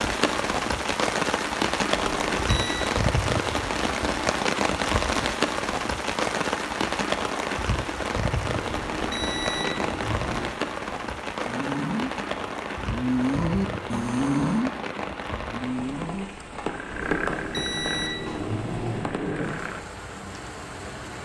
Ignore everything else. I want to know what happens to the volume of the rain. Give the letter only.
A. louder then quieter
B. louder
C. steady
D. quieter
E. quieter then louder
D.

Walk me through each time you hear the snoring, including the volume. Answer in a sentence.
You can hear the snoring from 11.4 to 19.8 s, getting quieter.